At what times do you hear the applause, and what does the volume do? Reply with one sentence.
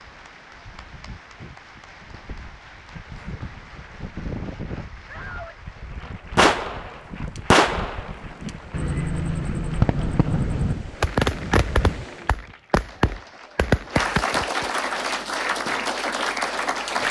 The applause can be heard from 0.0 to 17.0 s, getting louder.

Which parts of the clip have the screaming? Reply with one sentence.
You can hear the screaming from 5.0 to 5.6 s.